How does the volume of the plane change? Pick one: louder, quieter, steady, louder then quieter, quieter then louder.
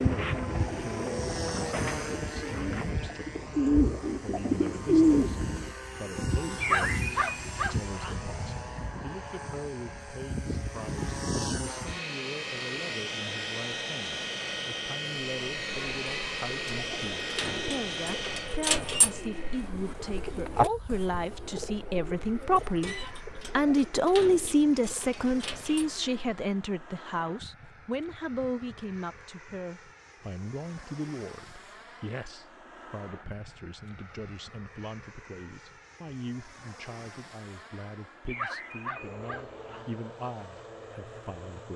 quieter.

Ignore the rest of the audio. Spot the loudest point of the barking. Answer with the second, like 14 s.
7 s.